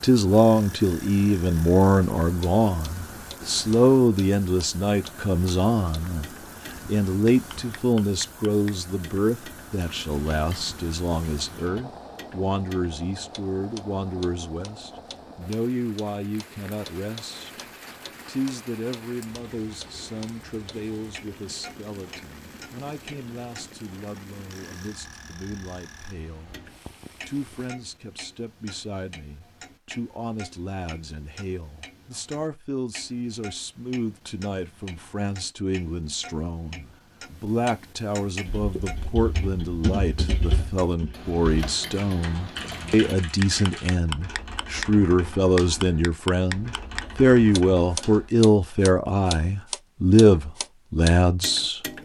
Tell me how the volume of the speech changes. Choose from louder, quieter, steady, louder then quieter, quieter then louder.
quieter then louder.